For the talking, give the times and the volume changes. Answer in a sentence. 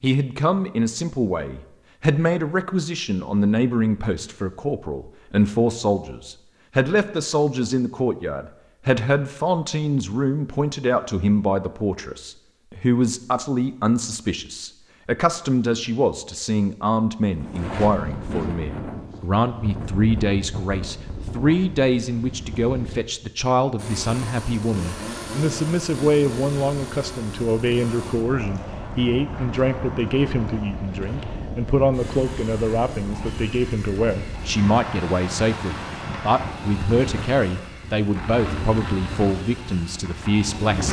You can hear the talking from 0.0 to 40.8 s, at a steady volume.